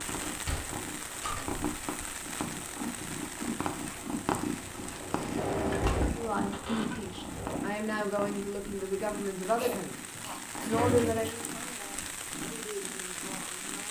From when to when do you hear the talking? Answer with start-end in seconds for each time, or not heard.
6.0-10.0, 10.6-13.8.